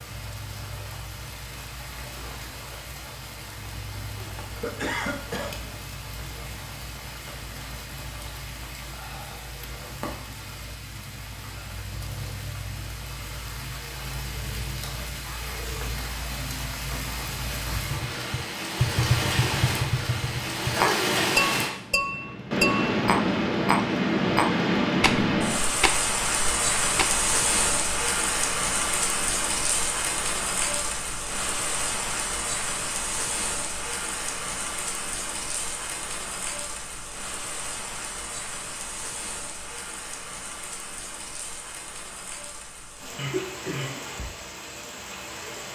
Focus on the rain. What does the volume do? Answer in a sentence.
The loudness of the rain goes up, then down.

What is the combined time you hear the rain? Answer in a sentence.
You can hear the rain for 46 seconds altogether.